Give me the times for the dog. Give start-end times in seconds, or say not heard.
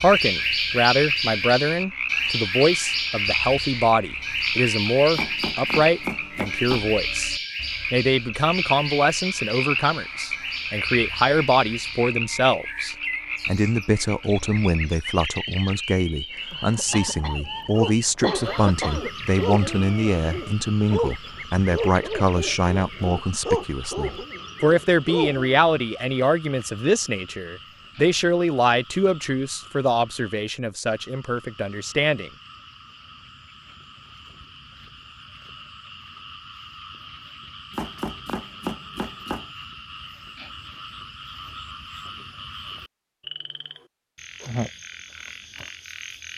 17.8-25.5.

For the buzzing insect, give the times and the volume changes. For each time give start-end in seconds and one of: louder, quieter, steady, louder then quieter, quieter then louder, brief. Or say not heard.
not heard.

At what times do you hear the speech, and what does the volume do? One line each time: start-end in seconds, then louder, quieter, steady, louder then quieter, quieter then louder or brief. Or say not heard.
0.0-32.3 steady.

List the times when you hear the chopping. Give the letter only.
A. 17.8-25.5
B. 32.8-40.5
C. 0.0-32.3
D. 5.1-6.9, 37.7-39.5
D.